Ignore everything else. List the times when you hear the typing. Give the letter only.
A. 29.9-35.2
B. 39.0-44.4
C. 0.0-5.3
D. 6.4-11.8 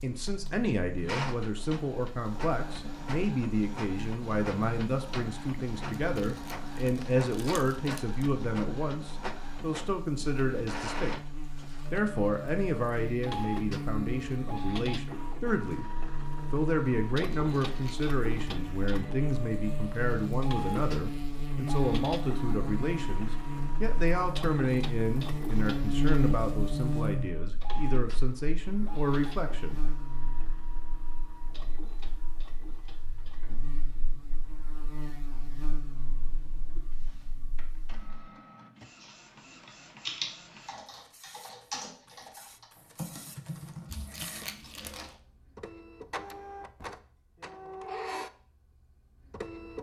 B.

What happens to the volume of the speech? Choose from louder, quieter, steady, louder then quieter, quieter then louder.
steady.